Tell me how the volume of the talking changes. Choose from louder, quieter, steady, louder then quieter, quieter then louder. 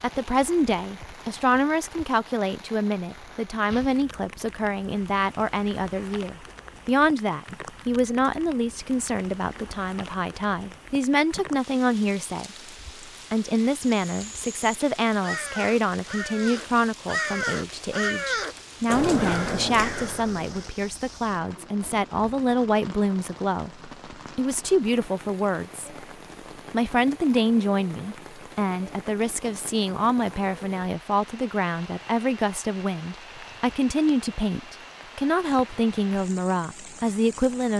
steady.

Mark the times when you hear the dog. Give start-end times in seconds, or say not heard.
not heard.